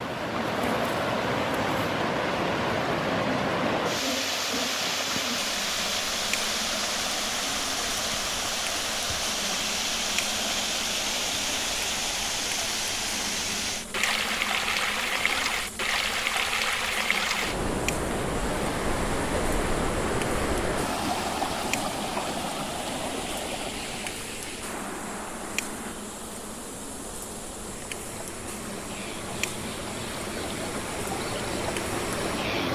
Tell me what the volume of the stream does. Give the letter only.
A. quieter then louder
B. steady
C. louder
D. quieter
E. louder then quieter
D.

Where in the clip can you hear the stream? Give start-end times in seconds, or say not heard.
0.0-32.7.